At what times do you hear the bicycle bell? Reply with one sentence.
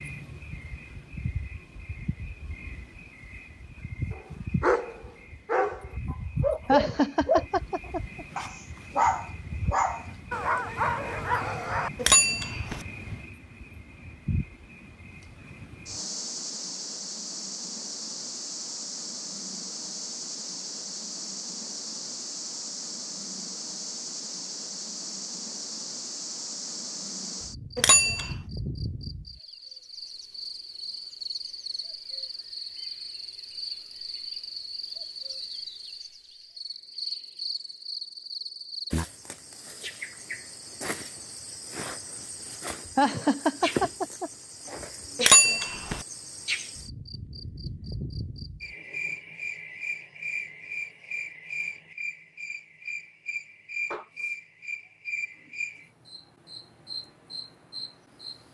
The bicycle bell can be heard from 12.0 to 12.8 s, from 27.8 to 28.4 s and from 45.1 to 46.0 s.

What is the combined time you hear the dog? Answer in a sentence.
The dog can be heard for 8 seconds in total.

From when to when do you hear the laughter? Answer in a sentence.
The laughter can be heard from 6.7 to 8.2 s and from 43.0 to 44.3 s.